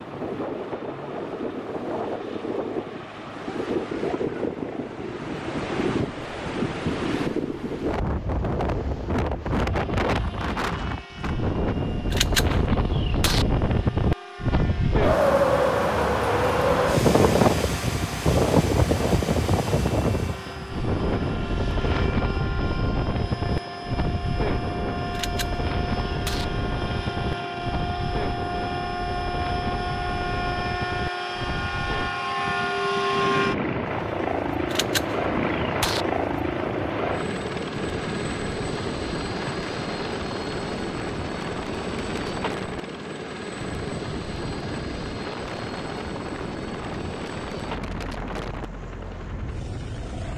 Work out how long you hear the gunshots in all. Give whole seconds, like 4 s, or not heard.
4 s.